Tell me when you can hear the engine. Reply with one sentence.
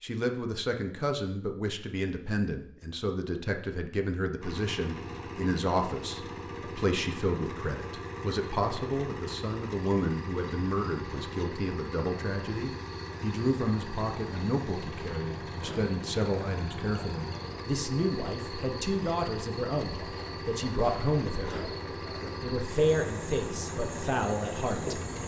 You can hear the engine from 4.4 to 25.2 s.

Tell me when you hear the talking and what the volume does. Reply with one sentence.
You can hear the talking from 0.0 to 21.6 s, at a steady volume; and briefly from 22.4 to 25.0 s.